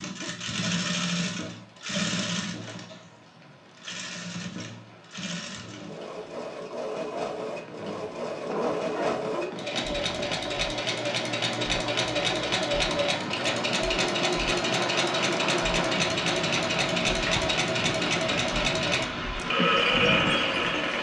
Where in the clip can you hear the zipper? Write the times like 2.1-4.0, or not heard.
8.4-9.6.